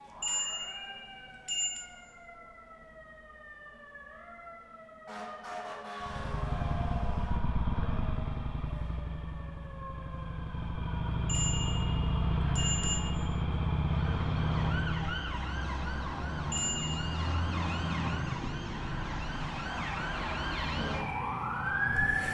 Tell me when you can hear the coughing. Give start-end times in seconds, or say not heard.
not heard.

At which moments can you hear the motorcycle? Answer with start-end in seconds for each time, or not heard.
6.0-15.3.